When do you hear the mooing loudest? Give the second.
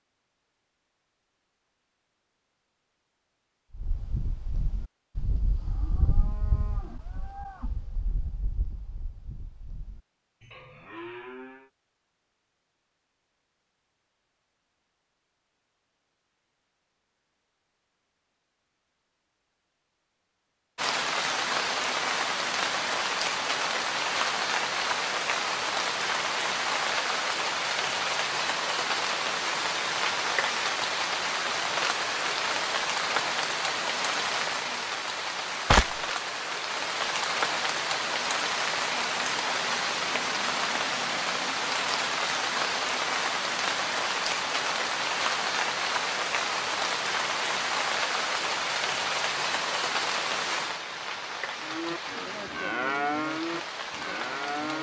53 s.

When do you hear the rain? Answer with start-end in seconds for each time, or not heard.
20.8-54.7.